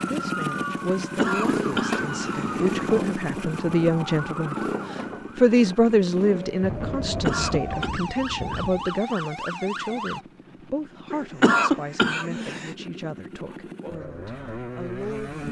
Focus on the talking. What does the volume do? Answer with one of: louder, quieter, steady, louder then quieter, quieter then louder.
louder then quieter.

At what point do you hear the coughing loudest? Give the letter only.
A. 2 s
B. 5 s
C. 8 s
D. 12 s
D.